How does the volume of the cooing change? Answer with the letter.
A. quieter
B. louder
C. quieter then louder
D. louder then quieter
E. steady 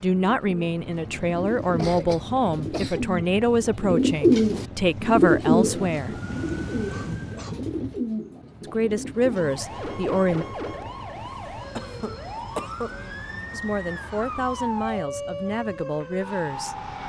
D.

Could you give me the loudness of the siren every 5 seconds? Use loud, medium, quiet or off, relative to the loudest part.
off, loud, loud, loud.